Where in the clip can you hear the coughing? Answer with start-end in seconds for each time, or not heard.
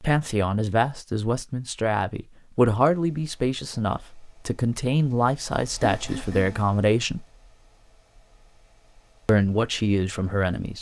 5.8-6.7.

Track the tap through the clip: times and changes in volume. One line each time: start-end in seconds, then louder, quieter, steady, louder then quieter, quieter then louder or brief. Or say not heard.
not heard.